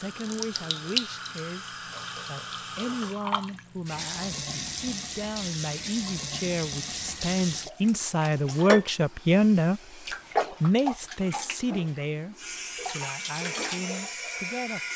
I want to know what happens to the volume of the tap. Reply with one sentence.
The loudness of the tap stays about the same.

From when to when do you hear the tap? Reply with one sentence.
You can hear the tap from 0.0 to 14.9 s.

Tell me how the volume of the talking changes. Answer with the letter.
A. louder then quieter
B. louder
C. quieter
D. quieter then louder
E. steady
A.